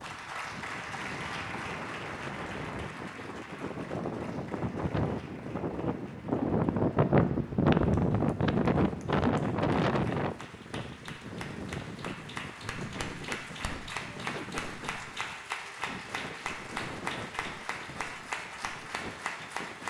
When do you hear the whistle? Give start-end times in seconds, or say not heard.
not heard.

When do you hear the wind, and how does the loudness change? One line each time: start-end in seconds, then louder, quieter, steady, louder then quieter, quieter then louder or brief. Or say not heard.
0.0-19.8 louder then quieter.